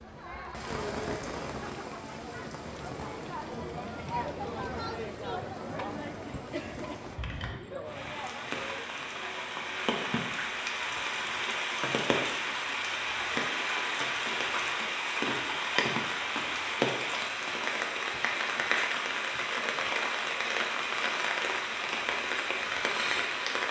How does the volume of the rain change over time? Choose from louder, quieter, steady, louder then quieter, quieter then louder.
louder.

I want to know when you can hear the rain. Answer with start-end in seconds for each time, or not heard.
0.0-23.6.